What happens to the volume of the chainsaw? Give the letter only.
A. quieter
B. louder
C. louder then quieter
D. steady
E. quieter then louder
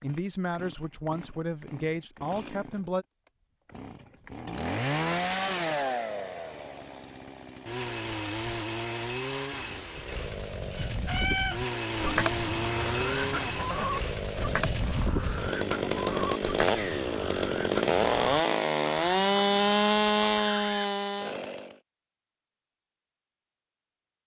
B.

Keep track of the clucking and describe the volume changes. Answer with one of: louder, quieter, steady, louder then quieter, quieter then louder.
quieter.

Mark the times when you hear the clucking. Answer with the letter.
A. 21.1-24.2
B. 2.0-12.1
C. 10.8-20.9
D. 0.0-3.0
C.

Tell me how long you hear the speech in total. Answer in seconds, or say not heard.
3 s.